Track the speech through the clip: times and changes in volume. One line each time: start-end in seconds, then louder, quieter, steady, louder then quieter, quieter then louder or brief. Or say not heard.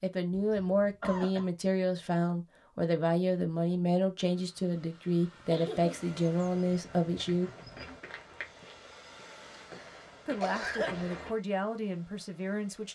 0.0-7.5 steady
10.2-12.9 brief.